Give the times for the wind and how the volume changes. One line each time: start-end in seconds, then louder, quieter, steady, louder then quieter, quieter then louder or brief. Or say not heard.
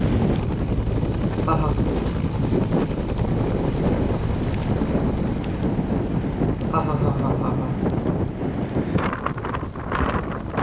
0.0-10.5 steady.